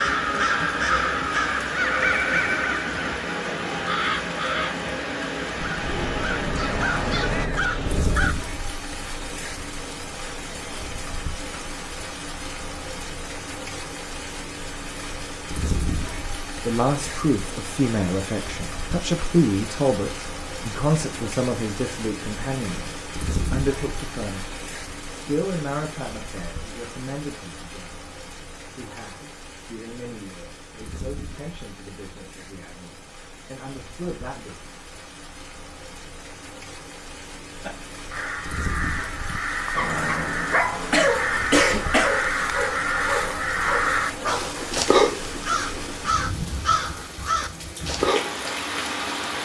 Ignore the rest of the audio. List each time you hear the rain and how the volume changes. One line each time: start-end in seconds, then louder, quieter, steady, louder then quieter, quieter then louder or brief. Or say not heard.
0.0-49.4 quieter then louder.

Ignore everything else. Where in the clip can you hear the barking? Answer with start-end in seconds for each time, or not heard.
39.8-44.7.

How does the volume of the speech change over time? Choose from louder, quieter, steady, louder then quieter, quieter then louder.
quieter.